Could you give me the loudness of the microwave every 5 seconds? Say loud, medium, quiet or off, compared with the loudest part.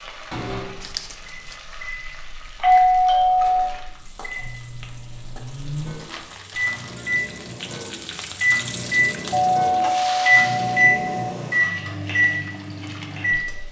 quiet, medium, loud.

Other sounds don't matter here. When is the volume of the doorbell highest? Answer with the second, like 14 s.
3 s.